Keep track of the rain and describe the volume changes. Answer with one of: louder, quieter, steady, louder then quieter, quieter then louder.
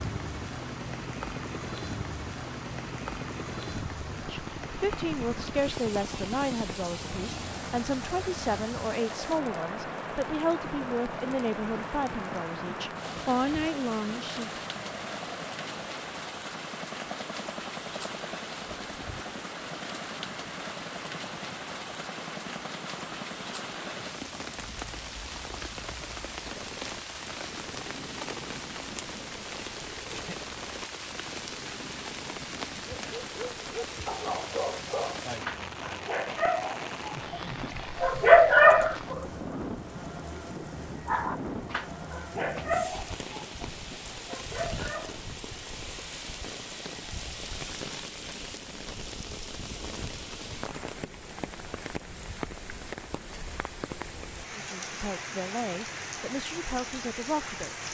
steady.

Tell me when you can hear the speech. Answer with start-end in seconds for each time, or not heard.
4.0-14.6, 54.5-57.8.